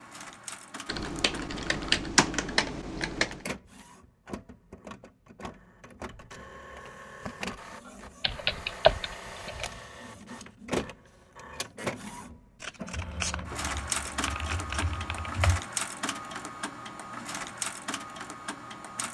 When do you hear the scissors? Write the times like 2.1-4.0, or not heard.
12.6-15.0.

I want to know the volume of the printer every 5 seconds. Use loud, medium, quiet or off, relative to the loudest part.
medium, medium, loud, loud.